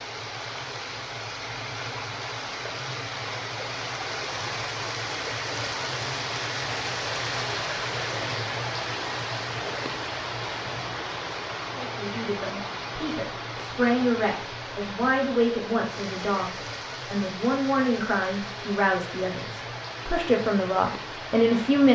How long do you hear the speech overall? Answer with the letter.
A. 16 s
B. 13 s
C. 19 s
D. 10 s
D.